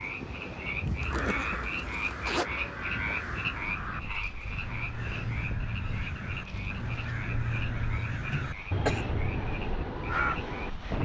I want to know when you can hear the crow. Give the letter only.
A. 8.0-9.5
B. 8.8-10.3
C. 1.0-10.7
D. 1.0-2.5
C.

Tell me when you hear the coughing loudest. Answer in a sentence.
The volume of the coughing peaks at 9 seconds.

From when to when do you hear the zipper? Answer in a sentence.
You can hear the zipper from 1.0 to 2.5 s.